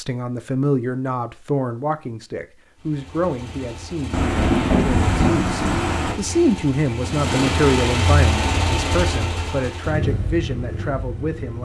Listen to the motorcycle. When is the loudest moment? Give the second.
8 s.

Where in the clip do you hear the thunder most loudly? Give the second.
5 s.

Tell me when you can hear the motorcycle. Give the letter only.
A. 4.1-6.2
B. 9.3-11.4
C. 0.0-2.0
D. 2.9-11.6
D.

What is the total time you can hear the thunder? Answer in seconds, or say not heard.
2 s.